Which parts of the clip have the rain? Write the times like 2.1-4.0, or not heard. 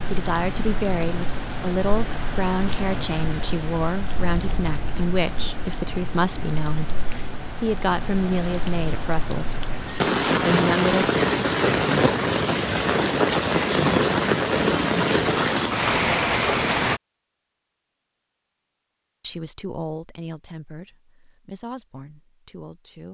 0.0-17.0.